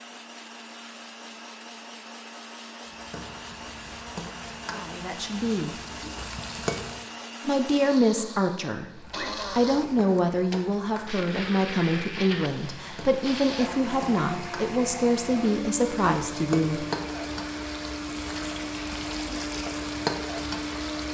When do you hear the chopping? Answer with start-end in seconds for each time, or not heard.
not heard.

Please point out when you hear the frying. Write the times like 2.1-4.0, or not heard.
2.9-7.1, 8.8-21.0.